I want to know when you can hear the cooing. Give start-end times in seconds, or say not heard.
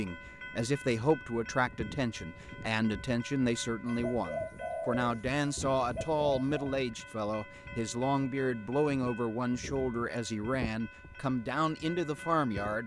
3.9-6.7.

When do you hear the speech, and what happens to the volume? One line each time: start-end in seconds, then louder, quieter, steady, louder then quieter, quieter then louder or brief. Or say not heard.
0.0-12.8 steady.